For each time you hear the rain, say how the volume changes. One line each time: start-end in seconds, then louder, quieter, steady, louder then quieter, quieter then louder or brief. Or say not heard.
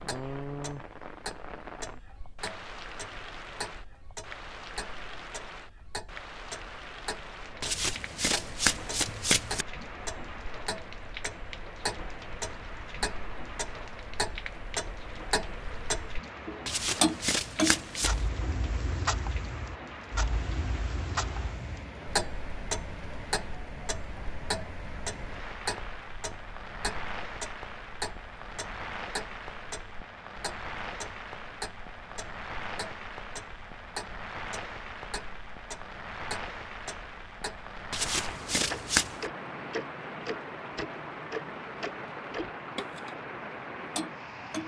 0.0-44.6 steady.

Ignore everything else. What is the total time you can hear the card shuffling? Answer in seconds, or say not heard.
5 s.